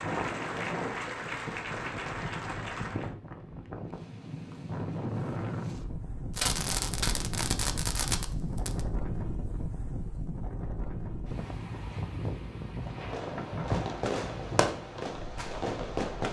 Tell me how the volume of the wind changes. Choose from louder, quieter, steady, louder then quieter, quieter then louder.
steady.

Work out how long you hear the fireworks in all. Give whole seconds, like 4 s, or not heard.
6 s.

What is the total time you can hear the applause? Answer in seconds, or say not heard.
3 s.